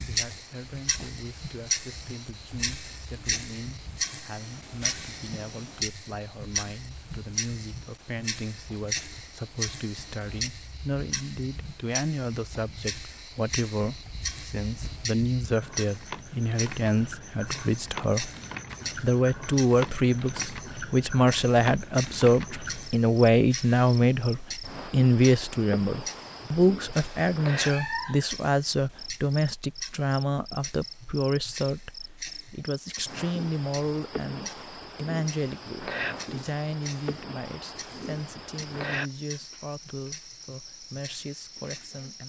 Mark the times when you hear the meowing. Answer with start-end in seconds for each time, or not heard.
27.6-28.2.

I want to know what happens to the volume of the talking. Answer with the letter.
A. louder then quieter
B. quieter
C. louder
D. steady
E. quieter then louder
A.